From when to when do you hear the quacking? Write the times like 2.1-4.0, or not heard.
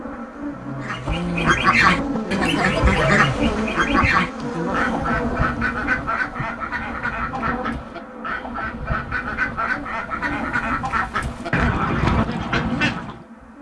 0.8-13.2.